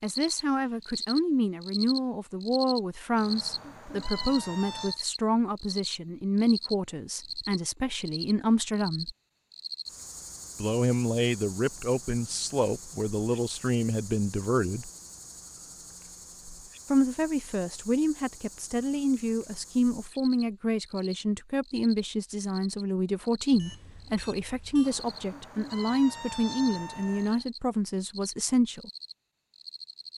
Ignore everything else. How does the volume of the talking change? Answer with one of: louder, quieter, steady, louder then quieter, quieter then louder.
steady.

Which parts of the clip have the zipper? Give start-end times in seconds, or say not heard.
not heard.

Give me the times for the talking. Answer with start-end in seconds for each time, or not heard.
0.0-9.1, 10.6-14.9, 16.9-28.9.